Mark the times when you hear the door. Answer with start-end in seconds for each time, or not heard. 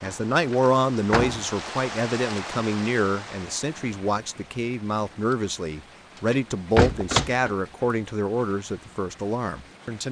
0.0-1.5, 6.3-7.5.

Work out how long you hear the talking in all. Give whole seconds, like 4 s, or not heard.
10 s.